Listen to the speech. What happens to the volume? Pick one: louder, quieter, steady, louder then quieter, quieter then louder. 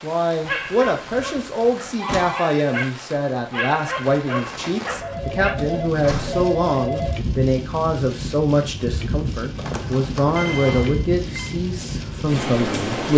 steady.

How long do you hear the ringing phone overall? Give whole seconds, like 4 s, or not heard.
4 s.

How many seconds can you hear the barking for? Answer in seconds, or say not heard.
5 s.